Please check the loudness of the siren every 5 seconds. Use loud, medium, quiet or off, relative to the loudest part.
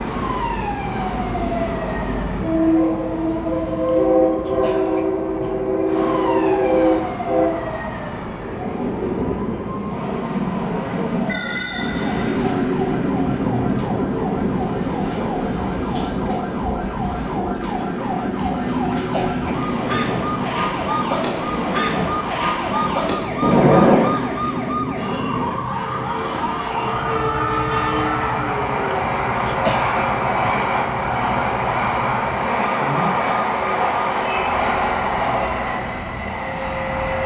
medium, medium, medium, medium, loud, medium, medium, quiet.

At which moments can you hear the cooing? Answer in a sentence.
The cooing can't be heard in this clip.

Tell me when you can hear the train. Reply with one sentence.
You can hear the train from 0.0 to 37.2 s.